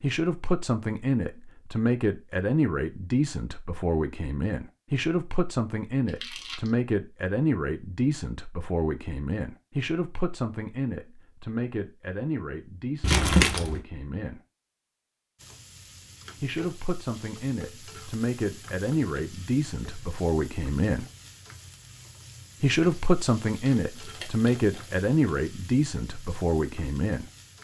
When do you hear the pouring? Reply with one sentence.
The pouring can't be heard in this clip.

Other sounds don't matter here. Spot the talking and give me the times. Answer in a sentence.
You can hear the talking from 0.0 to 14.4 s, from 16.4 to 21.1 s and from 22.6 to 27.2 s.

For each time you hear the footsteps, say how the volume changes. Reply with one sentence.
You can't hear the footsteps here.